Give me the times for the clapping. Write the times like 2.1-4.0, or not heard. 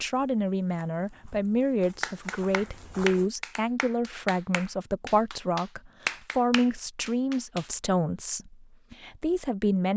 2.0-7.7.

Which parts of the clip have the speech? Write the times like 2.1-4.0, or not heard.
0.0-9.9.